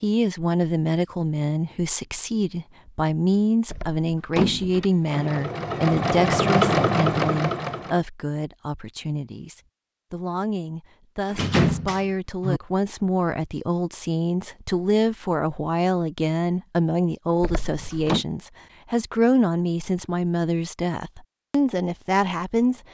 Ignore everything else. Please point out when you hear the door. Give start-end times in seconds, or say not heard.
3.6-4.8, 11.3-12.6, 17.4-18.2.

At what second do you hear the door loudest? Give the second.
12 s.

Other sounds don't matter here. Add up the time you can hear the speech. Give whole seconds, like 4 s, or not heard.
23 s.